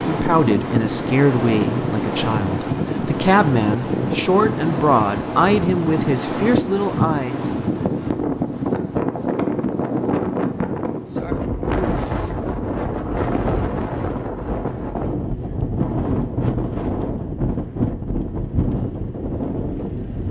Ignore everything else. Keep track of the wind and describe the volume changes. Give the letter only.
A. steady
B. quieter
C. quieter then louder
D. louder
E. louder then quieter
A.